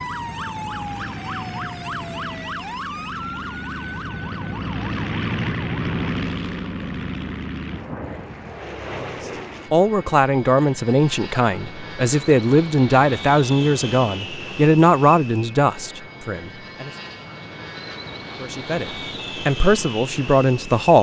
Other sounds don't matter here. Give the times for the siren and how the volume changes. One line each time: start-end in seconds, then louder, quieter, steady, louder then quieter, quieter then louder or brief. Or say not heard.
0.0-6.1 quieter.